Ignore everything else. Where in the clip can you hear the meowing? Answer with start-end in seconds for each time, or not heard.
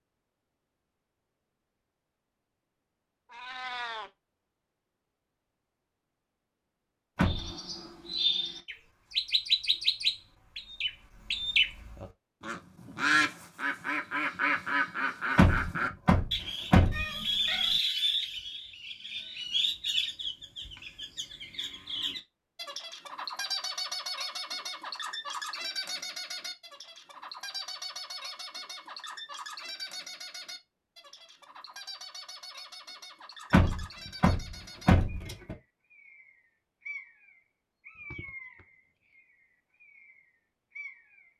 3.3-4.1, 16.9-17.8, 38.0-38.6.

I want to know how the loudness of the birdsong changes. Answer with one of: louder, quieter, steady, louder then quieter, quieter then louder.
quieter.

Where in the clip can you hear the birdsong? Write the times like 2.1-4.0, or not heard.
7.2-41.3.